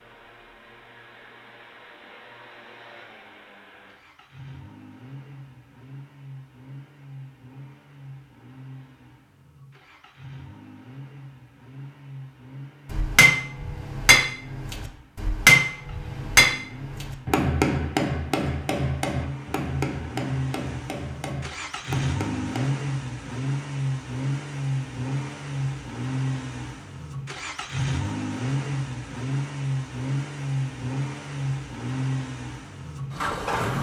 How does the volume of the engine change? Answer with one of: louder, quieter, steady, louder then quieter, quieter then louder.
louder.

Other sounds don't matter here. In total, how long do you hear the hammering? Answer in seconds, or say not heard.
10 s.